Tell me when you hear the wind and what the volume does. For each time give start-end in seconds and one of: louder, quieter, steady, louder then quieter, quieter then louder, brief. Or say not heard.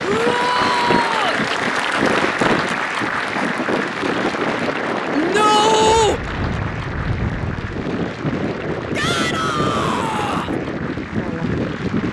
0.0-12.0 steady.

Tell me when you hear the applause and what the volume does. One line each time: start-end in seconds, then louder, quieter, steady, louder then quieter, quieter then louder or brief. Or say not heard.
0.0-12.0 quieter.